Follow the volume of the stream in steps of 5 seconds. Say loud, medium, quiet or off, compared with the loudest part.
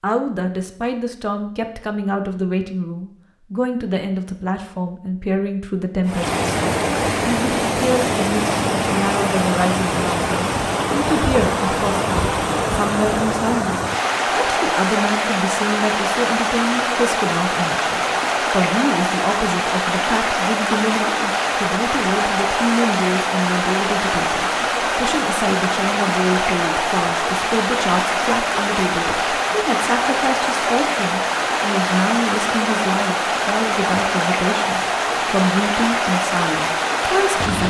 off, loud, loud, loud, loud, loud, loud, loud.